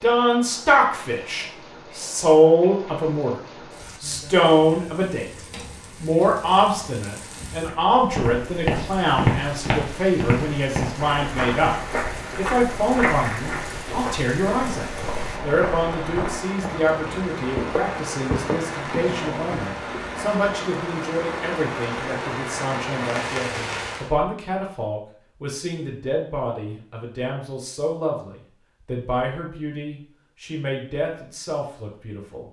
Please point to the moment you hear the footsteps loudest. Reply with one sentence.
The volume of the footsteps peaks at 9 seconds.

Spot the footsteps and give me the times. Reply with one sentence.
You can hear the footsteps from 7.7 to 20.0 s.